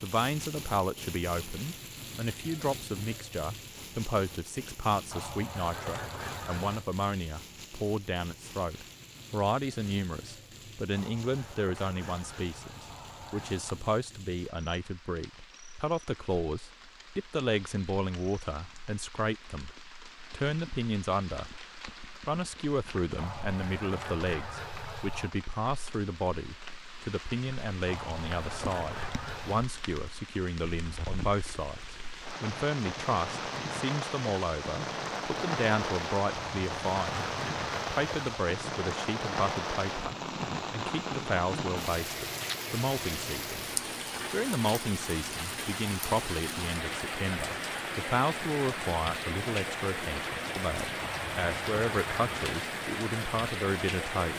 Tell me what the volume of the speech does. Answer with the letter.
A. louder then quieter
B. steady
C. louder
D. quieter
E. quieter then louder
B.